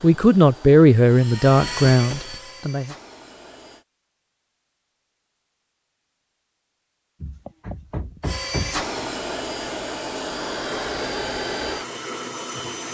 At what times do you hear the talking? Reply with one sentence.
The talking can be heard from 0.0 to 3.0 s.